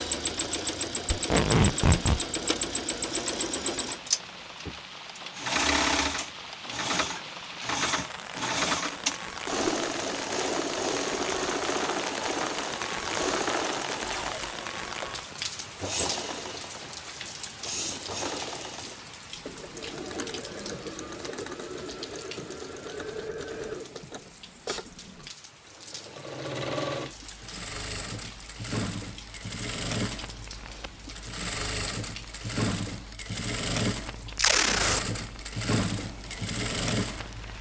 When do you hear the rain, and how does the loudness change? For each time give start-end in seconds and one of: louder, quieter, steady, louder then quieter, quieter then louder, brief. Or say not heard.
0.0-37.5 louder then quieter.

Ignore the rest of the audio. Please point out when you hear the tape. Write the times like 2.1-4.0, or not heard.
1.1-2.2, 14.0-14.6, 34.4-35.0.